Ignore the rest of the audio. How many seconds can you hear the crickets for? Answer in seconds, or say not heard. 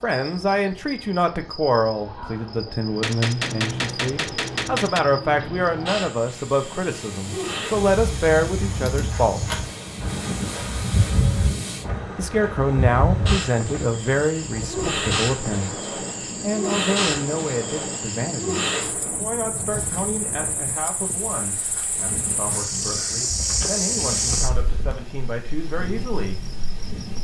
27 s.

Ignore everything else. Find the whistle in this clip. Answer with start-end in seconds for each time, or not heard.
not heard.